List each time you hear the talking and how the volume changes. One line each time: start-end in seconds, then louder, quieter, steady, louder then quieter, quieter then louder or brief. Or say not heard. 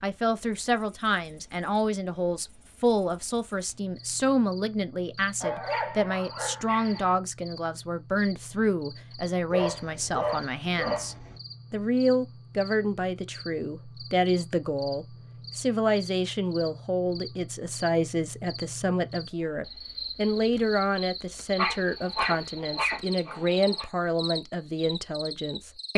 0.0-25.9 steady.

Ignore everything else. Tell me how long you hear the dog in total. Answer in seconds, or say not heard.
6 s.